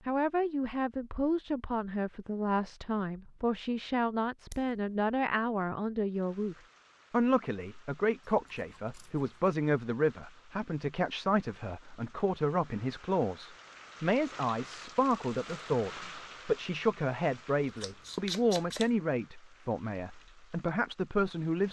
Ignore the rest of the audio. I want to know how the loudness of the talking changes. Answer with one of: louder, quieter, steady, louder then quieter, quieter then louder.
steady.